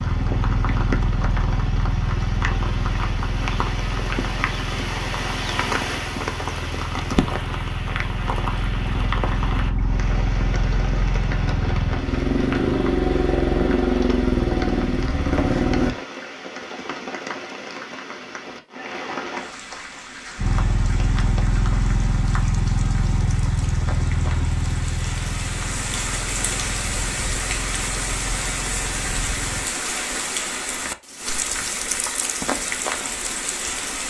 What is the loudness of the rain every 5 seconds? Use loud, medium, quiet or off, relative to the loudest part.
loud, loud, medium, medium, medium, loud, loud.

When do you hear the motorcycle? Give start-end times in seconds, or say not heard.
0.0-15.9, 20.4-29.6.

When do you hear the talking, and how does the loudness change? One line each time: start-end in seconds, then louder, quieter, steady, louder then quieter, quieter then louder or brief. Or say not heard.
not heard.